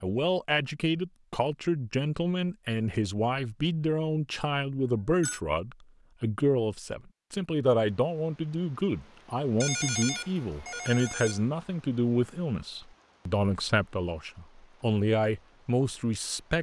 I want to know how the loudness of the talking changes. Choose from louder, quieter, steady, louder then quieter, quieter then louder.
steady.